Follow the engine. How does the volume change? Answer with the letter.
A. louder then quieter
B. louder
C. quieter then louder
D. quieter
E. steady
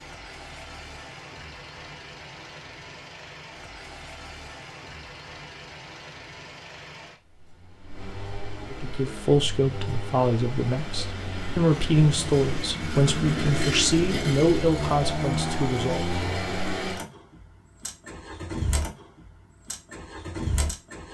A.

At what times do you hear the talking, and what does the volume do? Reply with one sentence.
The talking can be heard from 8.7 to 16.1 s, at a steady volume.